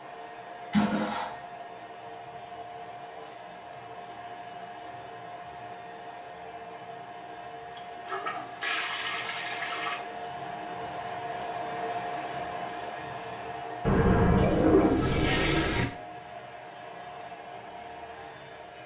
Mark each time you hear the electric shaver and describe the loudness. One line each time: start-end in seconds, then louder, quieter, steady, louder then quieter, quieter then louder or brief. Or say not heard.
not heard.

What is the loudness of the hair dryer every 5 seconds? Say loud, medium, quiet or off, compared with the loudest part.
medium, medium, loud, medium.